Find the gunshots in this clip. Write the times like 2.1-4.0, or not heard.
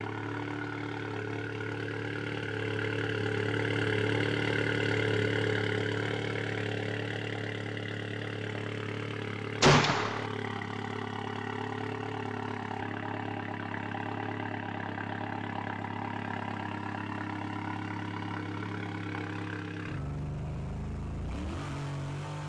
9.6-10.2.